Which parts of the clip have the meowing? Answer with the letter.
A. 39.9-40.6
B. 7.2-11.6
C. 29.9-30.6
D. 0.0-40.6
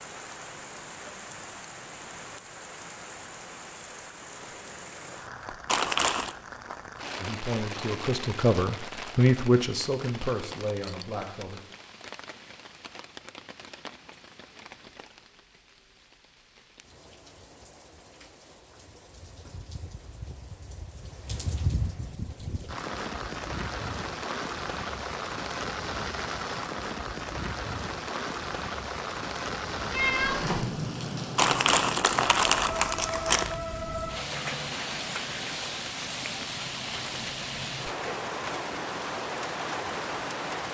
C.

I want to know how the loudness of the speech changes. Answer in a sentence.
The volume of the speech goes up, then down.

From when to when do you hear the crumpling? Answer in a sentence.
You can hear the crumpling from 5.7 to 6.3 s and from 31.4 to 33.5 s.